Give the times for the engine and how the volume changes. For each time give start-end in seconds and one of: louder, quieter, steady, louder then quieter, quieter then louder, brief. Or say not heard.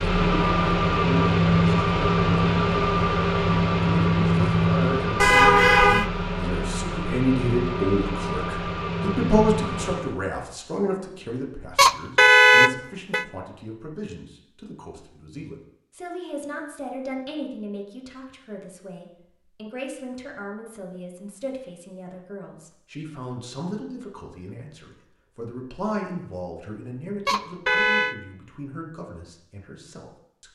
0.0-10.2 quieter.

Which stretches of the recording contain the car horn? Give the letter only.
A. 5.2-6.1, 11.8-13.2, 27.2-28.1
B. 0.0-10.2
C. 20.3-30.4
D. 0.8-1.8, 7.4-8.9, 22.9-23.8
A.